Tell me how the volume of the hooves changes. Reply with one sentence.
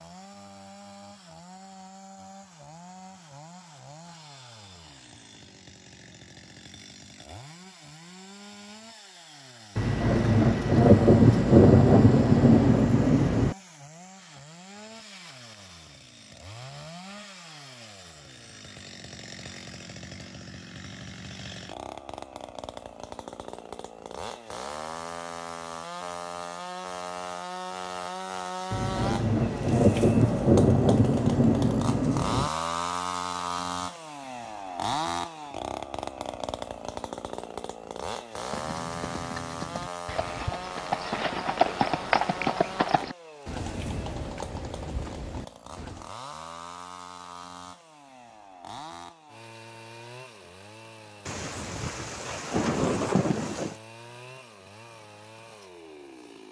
The loudness of the hooves goes up, then down.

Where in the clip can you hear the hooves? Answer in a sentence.
The hooves can be heard from 38.5 to 46.1 s.